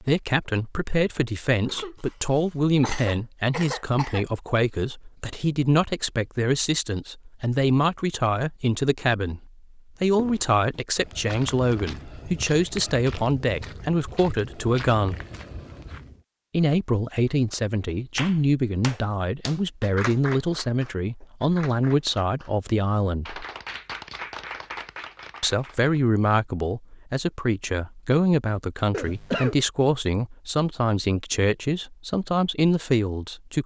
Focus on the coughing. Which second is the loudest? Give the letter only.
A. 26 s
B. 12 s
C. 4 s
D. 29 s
D.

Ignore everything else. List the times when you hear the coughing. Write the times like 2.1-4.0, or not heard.
1.6-4.2, 28.9-29.6.